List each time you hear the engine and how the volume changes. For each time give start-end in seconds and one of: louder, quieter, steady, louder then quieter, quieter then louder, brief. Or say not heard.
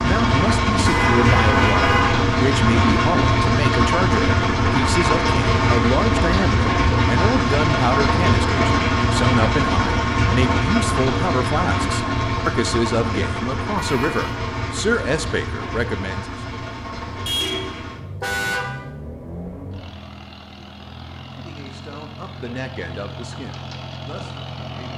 0.0-24.9 quieter.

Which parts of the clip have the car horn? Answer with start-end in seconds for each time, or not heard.
0.8-2.2, 13.8-14.2, 17.2-18.9.